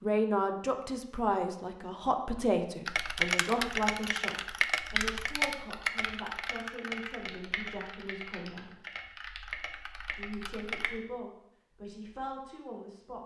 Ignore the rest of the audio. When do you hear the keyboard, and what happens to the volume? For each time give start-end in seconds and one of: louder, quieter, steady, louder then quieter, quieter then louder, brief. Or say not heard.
2.9-11.0 quieter.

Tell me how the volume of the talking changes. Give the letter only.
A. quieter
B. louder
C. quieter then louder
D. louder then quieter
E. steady
A.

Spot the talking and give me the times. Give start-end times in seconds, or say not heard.
0.0-8.8, 10.2-13.2.